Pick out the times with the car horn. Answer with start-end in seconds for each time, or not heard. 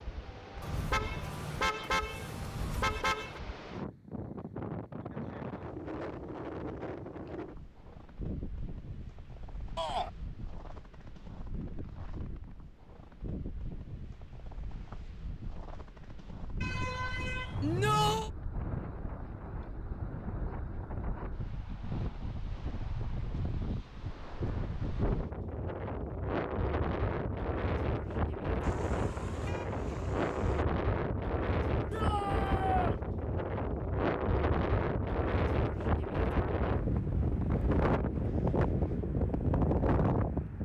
0.6-3.4, 16.6-18.2, 28.6-30.6.